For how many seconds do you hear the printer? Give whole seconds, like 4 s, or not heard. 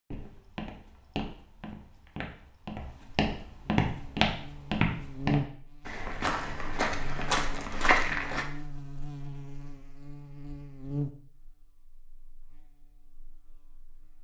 not heard.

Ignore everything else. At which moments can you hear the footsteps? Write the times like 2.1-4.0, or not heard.
0.1-8.4.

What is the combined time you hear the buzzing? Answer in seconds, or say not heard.
10 s.